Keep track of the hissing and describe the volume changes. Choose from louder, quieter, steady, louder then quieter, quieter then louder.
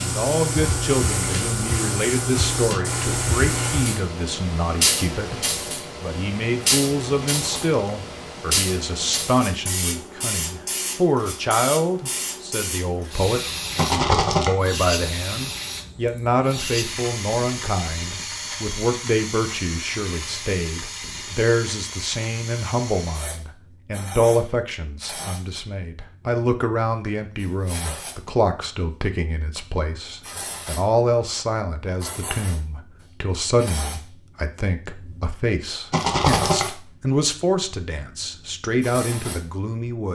quieter.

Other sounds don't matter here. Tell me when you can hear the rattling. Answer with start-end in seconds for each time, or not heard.
7.3-7.8, 13.8-14.5, 35.9-36.6.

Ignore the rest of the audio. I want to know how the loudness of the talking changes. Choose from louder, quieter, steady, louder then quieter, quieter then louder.
steady.